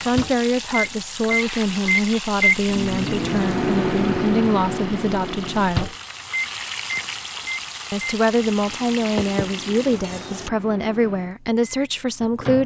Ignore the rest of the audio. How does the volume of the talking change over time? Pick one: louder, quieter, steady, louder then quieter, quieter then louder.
steady.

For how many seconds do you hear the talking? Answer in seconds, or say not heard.
11 s.